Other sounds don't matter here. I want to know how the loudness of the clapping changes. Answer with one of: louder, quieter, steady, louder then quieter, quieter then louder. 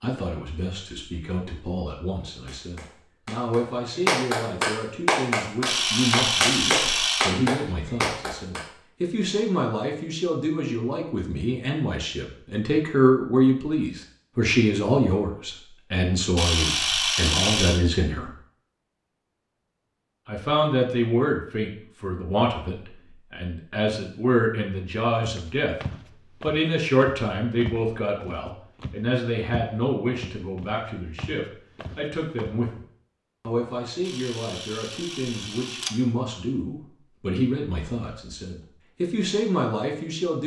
louder.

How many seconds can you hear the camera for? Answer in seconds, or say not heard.
5 s.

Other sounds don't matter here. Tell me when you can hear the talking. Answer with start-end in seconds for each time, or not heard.
0.0-18.3, 20.2-25.8, 26.4-32.8, 33.4-40.4.